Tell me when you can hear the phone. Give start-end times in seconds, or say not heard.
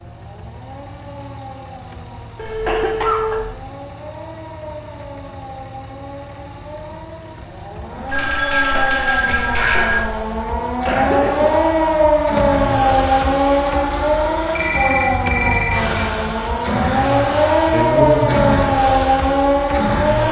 2.4-3.5, 8.1-10.0, 14.5-16.1.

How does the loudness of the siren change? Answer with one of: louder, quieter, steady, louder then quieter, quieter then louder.
louder.